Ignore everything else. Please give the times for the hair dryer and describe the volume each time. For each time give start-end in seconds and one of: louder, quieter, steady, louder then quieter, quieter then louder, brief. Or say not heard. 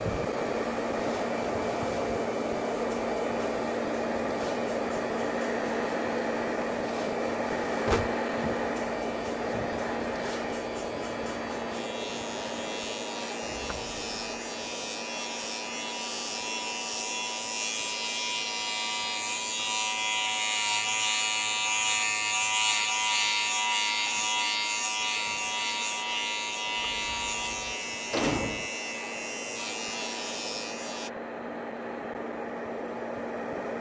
0.0-33.7 quieter then louder.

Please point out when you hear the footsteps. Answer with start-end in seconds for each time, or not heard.
not heard.